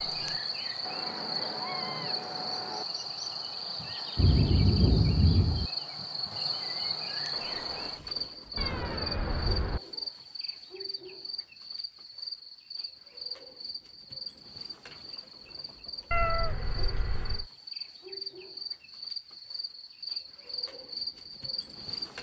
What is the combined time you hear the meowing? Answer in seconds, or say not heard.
5 s.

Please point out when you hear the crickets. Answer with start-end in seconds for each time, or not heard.
0.0-22.1.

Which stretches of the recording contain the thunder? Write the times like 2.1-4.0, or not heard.
4.2-5.7.